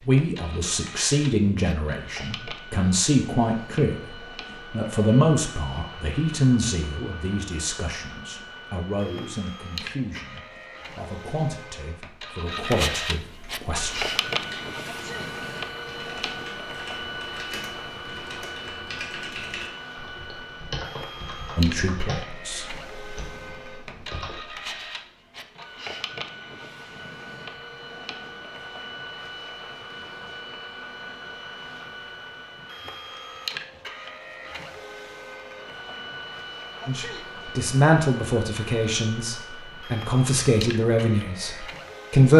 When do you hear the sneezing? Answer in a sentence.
The sneezing can be heard from 14.8 to 15.3 s and from 36.8 to 37.3 s.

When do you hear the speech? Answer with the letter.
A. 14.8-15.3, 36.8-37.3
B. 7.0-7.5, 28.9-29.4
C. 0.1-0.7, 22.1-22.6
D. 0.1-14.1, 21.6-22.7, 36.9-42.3
D.